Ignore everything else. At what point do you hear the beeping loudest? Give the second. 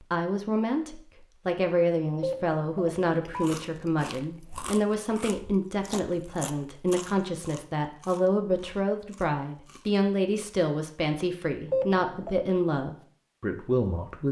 12 s.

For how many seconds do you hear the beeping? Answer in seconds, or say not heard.
2 s.